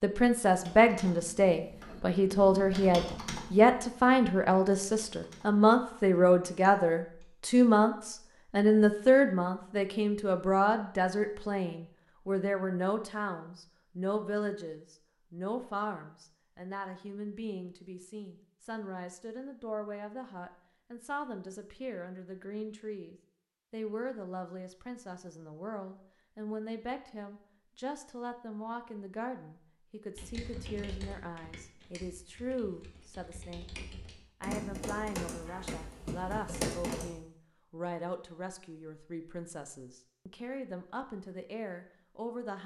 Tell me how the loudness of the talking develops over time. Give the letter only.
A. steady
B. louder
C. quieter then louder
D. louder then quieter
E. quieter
E.